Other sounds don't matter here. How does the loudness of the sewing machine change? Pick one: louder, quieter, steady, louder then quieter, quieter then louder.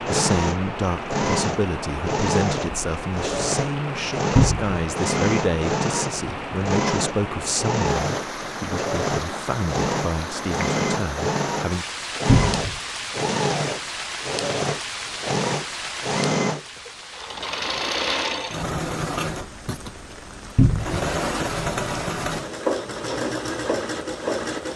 steady.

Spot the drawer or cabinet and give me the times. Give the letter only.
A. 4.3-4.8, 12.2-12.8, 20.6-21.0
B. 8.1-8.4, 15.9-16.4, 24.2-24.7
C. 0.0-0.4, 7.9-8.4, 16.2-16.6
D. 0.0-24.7
A.